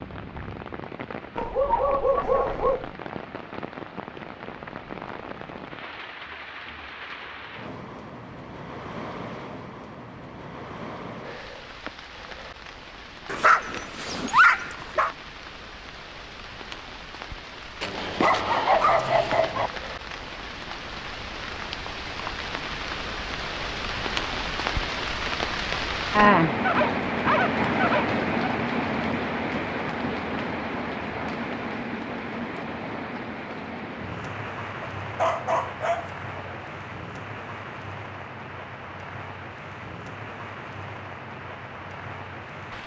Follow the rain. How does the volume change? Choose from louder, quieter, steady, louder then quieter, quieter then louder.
louder then quieter.